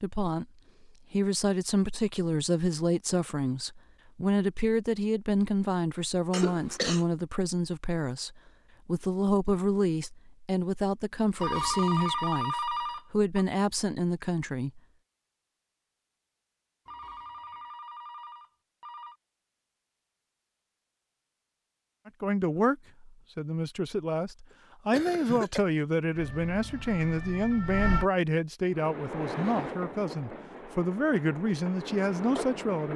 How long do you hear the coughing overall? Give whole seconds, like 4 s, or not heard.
2 s.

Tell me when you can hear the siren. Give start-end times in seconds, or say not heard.
26.1-28.1.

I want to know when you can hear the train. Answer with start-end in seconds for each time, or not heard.
28.6-32.9.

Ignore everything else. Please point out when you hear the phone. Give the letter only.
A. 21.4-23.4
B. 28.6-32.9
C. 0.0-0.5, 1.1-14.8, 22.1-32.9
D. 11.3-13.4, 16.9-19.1
D.